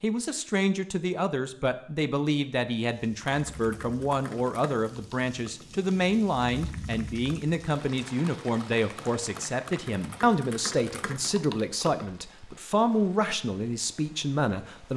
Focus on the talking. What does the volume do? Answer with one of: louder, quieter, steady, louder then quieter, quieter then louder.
steady.